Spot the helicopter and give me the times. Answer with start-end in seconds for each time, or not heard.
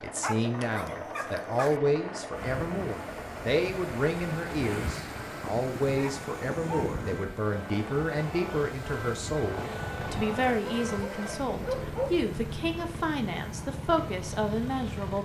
0.0-15.1.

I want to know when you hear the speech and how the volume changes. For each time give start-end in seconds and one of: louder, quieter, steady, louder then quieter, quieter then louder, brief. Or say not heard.
0.0-15.1 steady.